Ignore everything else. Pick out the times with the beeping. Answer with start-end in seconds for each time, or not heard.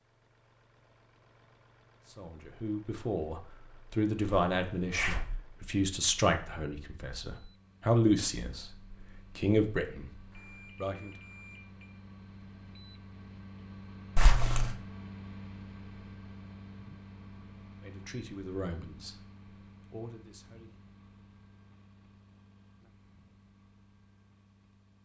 10.3-11.9.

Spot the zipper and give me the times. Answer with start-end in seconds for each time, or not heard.
4.5-5.4, 14.2-14.8.